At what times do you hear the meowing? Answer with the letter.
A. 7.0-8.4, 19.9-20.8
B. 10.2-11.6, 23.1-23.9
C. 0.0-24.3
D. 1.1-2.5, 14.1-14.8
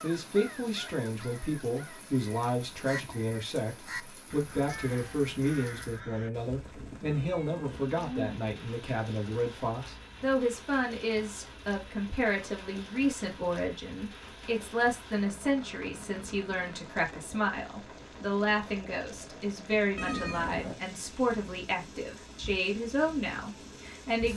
A.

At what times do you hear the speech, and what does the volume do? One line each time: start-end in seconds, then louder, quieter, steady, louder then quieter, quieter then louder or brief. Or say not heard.
0.0-24.3 steady.